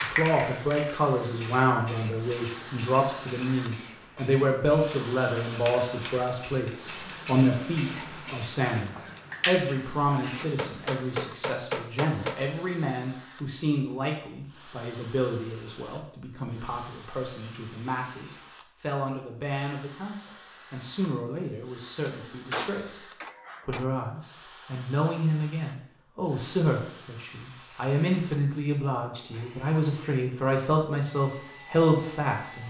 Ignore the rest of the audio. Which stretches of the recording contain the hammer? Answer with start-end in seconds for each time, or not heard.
10.4-12.4, 22.2-23.9.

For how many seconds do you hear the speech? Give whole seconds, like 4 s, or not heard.
32 s.